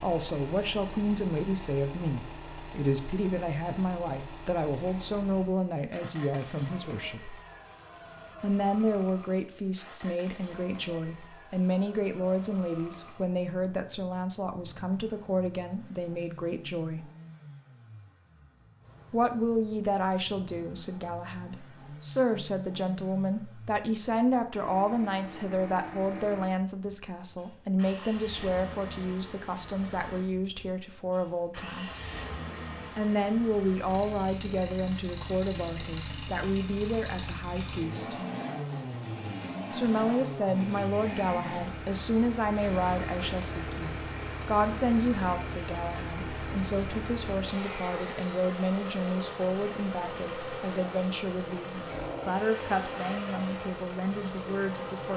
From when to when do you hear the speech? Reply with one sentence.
The speech can be heard from 0.0 to 7.3 s, from 8.4 to 17.1 s, from 19.1 to 31.9 s, from 33.0 to 38.1 s and from 39.7 to 55.1 s.